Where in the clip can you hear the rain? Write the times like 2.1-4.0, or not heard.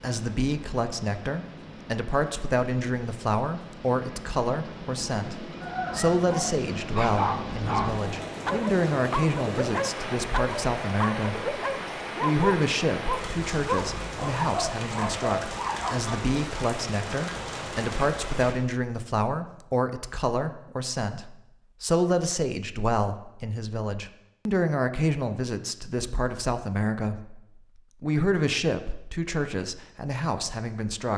0.0-18.6.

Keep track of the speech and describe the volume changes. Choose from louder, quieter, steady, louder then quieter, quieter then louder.
steady.